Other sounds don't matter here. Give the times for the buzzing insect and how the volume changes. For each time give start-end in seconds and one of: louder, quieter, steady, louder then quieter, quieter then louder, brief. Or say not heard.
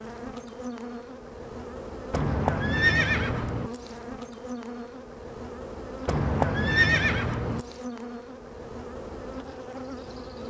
0.0-10.4 steady.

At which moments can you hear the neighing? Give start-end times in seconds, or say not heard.
2.1-3.7, 6.0-7.7.